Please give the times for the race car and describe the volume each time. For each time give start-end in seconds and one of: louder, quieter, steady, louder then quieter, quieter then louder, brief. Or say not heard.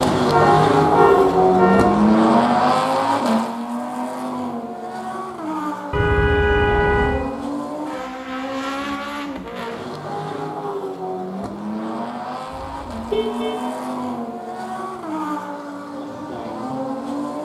0.0-17.3 quieter.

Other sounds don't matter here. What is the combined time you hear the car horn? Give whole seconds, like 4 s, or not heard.
4 s.